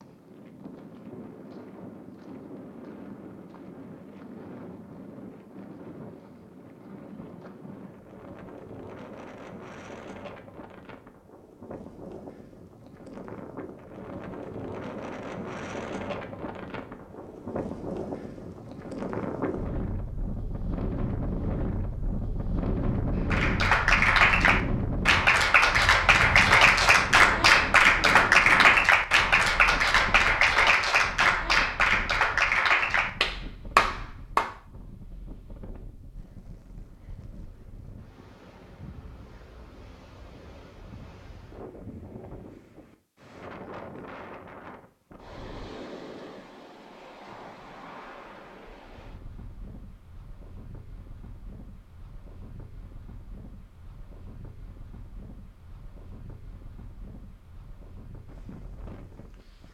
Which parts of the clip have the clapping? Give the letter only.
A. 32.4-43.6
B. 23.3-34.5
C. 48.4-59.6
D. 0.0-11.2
B.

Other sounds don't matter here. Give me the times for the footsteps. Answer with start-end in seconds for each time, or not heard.
not heard.